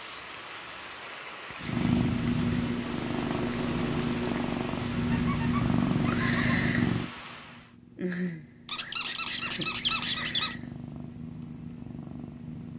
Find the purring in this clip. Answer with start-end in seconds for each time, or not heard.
1.6-12.7.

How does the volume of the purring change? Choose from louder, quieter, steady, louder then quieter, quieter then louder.
quieter.